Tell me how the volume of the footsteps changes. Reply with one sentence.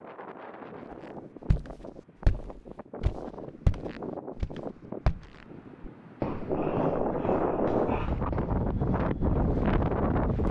The volume of the footsteps goes down.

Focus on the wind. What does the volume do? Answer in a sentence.
The volume of the wind goes up.